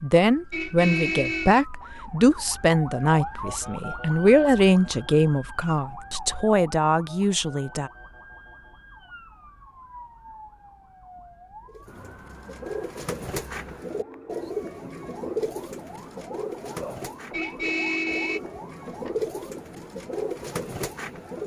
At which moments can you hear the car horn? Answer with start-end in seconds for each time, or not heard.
0.5-1.6, 17.3-19.1.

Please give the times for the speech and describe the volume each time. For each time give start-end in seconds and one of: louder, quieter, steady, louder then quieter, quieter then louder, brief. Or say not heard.
0.0-7.9 steady.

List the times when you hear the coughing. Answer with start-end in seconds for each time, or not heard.
16.7-17.5.